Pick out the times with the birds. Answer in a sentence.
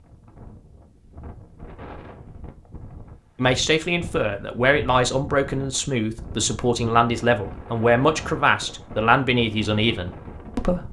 The birds can't be heard in this clip.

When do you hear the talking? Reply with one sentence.
The talking can be heard from 3.4 to 10.8 s.